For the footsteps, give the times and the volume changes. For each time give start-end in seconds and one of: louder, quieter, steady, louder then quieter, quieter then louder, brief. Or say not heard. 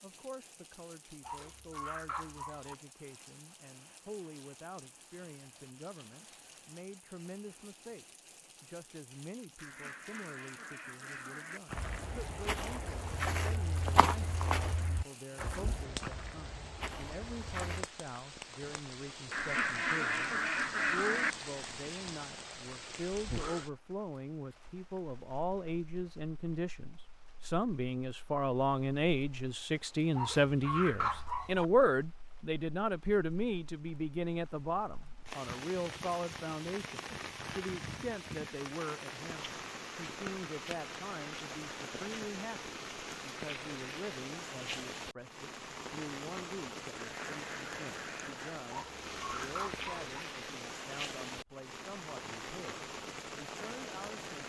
11.7-17.9 louder then quieter.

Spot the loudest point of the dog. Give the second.
31 s.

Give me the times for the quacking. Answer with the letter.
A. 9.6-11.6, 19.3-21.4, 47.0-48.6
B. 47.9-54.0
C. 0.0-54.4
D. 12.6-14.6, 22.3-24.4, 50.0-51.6
A.